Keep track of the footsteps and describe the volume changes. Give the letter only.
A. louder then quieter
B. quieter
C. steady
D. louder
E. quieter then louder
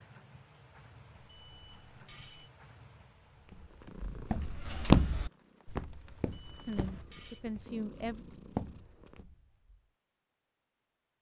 E.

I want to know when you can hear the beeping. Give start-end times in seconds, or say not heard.
1.1-2.5, 6.2-7.5.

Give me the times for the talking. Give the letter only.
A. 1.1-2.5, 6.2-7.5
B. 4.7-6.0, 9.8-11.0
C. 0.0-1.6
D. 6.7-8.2
D.